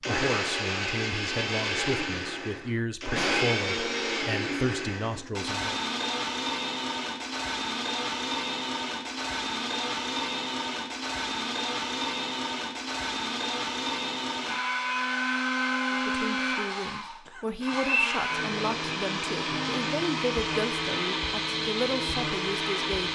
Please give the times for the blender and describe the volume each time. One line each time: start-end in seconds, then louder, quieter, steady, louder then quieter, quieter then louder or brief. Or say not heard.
0.0-23.1 steady.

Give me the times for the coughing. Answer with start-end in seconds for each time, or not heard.
2.6-3.5, 17.2-17.9.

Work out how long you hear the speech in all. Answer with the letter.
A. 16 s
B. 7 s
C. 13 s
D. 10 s
C.